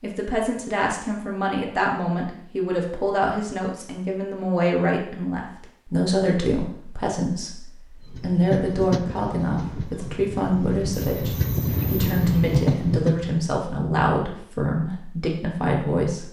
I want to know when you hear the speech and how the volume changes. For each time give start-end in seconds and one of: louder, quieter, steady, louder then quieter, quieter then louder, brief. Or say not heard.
0.0-16.2 steady.